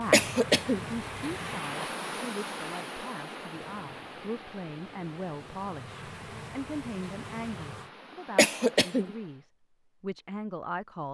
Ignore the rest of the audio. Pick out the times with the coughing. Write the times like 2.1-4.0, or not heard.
0.1-0.8, 8.3-9.1.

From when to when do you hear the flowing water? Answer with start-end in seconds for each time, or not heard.
0.0-9.4.